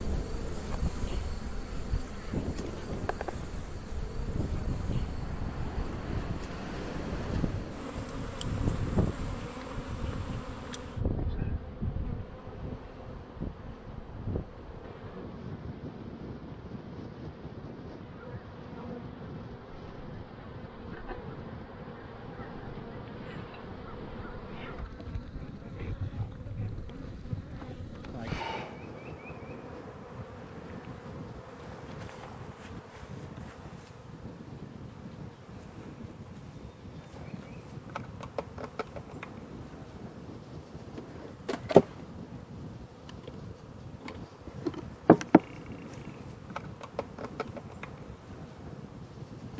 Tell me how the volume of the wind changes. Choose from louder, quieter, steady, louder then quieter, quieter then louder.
quieter.